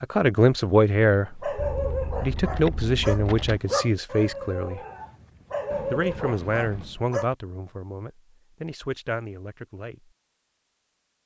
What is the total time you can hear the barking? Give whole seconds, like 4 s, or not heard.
6 s.